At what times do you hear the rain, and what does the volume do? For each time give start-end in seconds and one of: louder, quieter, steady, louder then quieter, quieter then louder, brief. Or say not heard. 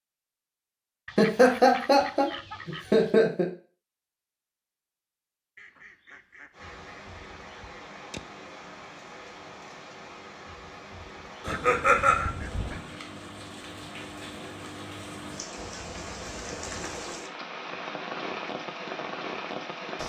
6.5-20.0 louder.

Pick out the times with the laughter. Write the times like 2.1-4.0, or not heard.
1.1-3.5, 11.4-12.3.